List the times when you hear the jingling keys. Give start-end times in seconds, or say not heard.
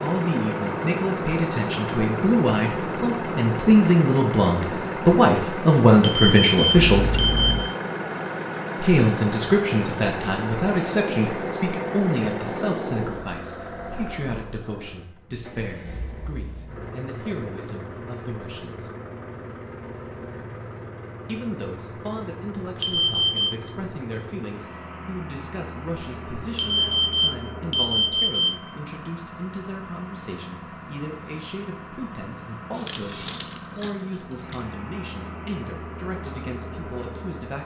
6.8-7.7, 32.7-34.6.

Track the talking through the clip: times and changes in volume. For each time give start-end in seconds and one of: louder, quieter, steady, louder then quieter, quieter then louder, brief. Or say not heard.
0.0-7.2 louder
8.8-18.9 quieter
21.2-37.5 steady.